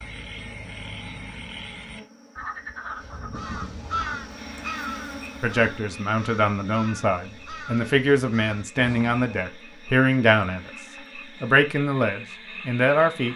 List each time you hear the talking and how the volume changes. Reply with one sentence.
The talking can be heard from 5.4 to 10.7 s, getting louder; and briefly from 11.4 to 13.3 s.